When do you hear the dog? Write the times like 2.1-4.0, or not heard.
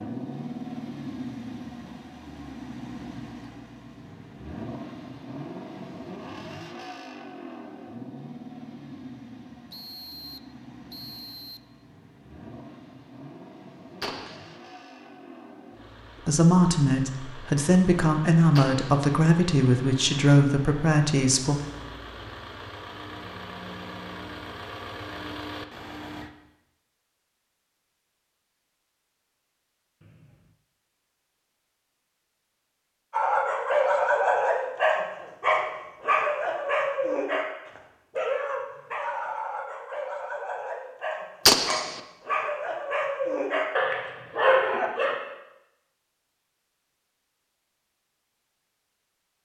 33.1-45.1.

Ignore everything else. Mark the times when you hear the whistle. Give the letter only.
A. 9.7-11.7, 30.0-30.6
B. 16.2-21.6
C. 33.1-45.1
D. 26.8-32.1
A.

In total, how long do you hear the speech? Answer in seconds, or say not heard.
5 s.